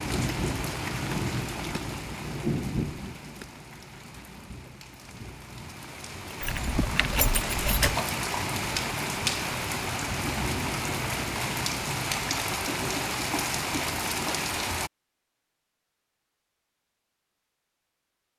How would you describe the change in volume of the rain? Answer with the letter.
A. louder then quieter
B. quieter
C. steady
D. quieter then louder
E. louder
D.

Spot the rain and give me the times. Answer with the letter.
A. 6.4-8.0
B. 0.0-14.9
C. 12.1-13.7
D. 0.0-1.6
B.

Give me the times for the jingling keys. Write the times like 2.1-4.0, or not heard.
6.4-8.0.